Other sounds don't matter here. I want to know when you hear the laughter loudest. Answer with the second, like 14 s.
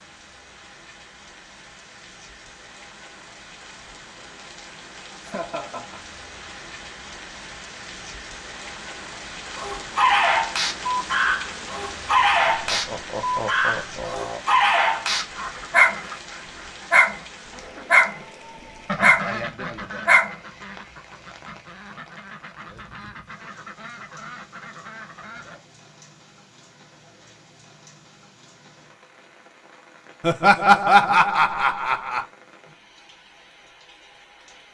31 s.